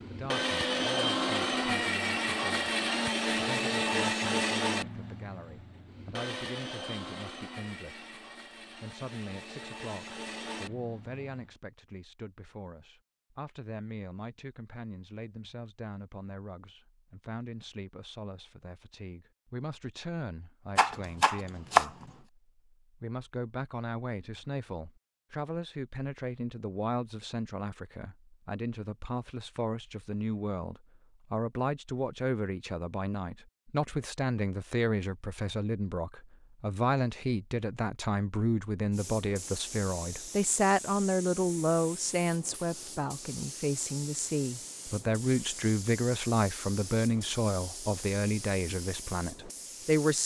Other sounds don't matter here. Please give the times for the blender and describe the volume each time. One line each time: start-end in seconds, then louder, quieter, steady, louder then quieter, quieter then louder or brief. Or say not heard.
0.0-11.5 quieter.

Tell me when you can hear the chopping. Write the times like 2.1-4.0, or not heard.
20.8-22.1.